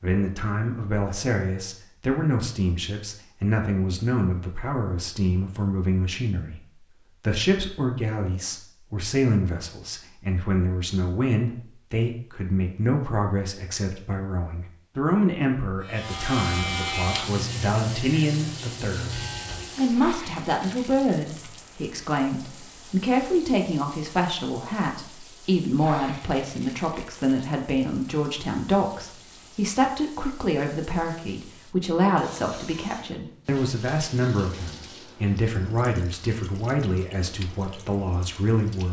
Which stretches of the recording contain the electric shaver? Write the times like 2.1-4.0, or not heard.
15.8-19.8.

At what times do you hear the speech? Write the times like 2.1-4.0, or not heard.
0.0-19.1, 19.8-38.8.